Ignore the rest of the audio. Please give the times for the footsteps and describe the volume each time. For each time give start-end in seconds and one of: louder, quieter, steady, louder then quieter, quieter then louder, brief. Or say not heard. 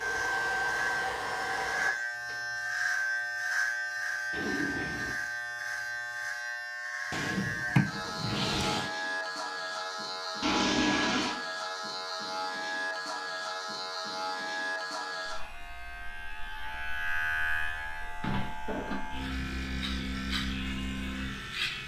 not heard.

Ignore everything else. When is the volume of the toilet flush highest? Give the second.
11 s.